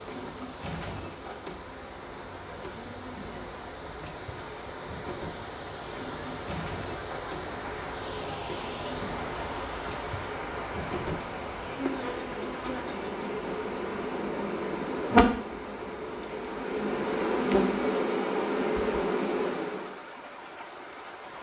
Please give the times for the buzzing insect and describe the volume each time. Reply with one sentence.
You can hear the buzzing insect from 0.0 to 19.9 s, getting louder.